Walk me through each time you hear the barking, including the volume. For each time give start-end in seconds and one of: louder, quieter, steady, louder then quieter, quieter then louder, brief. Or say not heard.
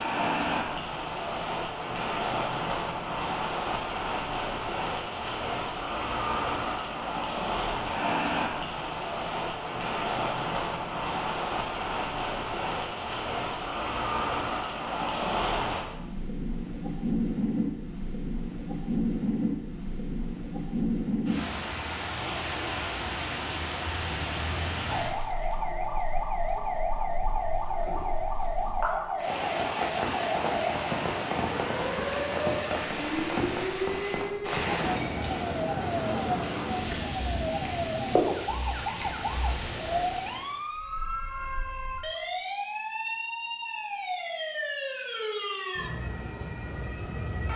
not heard.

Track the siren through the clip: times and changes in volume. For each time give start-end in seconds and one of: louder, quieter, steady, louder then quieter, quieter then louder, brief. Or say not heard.
24.9-47.5 steady.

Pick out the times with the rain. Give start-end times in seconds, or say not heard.
0.0-40.5.